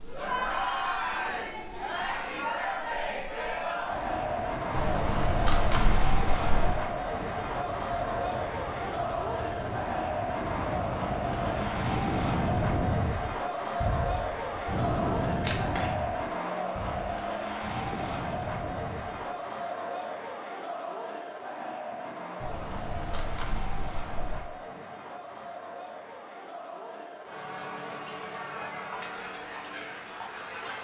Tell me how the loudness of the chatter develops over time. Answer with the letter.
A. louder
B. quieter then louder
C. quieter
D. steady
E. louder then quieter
C.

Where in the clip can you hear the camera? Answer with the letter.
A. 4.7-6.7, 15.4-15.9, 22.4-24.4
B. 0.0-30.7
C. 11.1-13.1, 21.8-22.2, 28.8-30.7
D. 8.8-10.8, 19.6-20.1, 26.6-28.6
A.